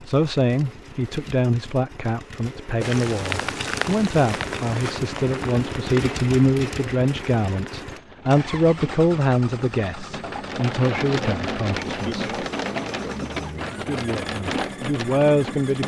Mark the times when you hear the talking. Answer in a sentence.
You can hear the talking from 0.1 to 12.2 s and from 13.8 to 15.8 s.